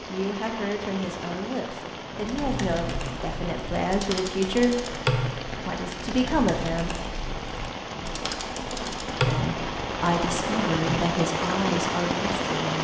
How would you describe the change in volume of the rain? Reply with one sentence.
The loudness of the rain goes up.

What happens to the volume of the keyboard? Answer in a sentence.
The loudness of the keyboard goes up, then down.